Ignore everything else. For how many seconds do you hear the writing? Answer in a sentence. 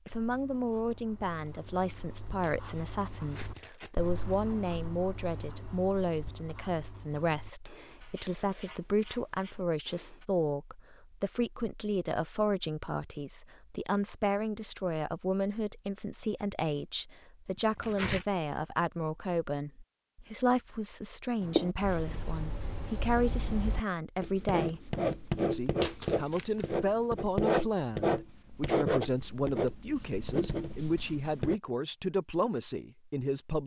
The writing can be heard for 20 seconds in total.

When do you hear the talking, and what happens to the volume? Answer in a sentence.
The talking can be heard from 0.1 to 33.6 s, at a steady volume.